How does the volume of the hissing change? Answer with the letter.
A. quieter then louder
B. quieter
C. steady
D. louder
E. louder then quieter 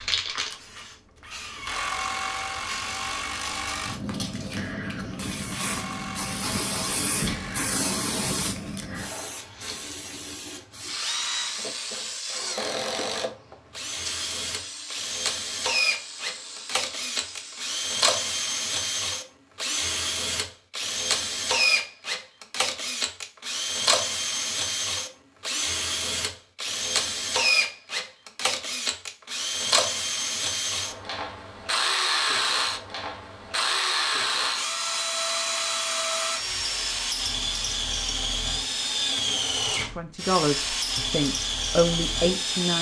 E.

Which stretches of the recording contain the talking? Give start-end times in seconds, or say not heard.
39.9-42.7.